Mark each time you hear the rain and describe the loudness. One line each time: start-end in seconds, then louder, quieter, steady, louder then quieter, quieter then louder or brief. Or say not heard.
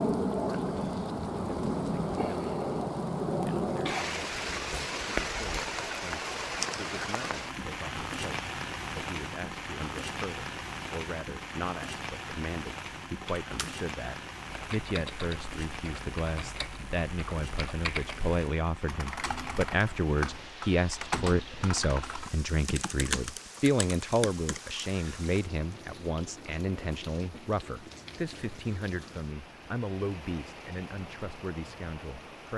0.0-32.5 quieter.